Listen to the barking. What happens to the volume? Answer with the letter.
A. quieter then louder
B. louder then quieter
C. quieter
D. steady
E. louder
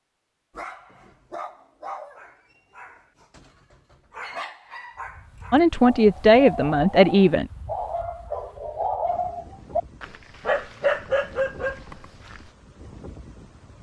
E.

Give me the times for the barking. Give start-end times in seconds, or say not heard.
0.5-12.5.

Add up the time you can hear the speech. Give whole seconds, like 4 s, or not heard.
2 s.